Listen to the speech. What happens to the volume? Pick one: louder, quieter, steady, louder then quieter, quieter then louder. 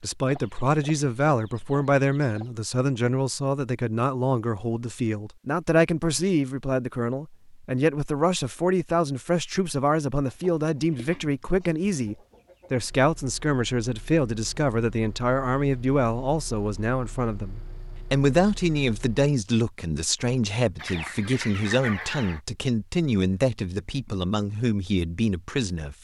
steady.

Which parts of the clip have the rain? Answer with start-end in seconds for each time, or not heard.
not heard.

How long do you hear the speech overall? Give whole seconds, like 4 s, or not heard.
26 s.